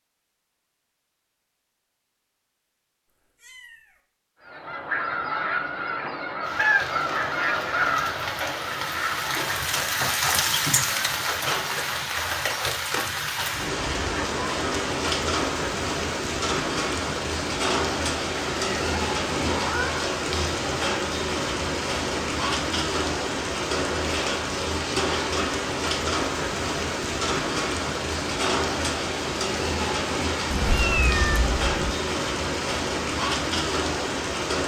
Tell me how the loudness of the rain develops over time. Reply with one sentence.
The loudness of the rain stays about the same.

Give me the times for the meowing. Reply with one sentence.
The meowing can be heard from 3.4 to 4.0 s, from 18.3 to 20.1 s and from 30.5 to 31.9 s.